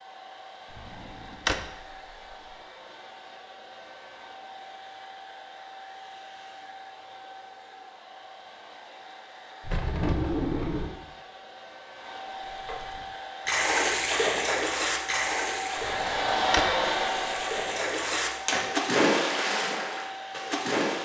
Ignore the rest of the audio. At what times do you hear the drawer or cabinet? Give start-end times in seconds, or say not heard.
0.8-1.6, 9.6-10.9, 15.8-16.7.